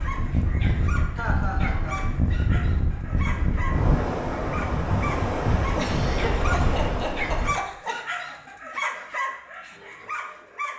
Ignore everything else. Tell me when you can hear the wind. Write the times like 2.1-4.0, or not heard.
0.0-7.5.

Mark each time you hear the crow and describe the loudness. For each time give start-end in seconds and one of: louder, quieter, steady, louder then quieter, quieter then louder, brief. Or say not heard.
not heard.